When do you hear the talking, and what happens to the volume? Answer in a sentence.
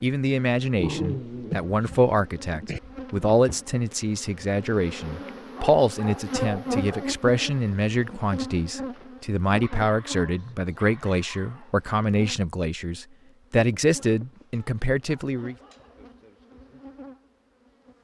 You can hear the talking from 0.0 to 15.6 s, at a steady volume.